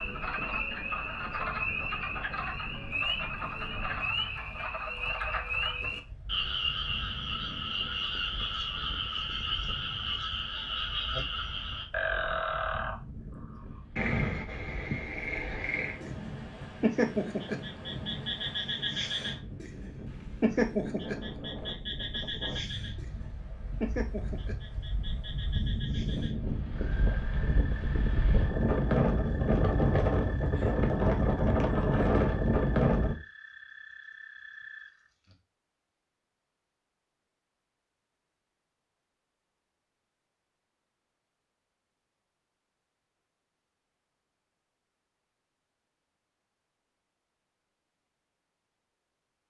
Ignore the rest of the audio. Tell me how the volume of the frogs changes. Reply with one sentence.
The loudness of the frogs goes down.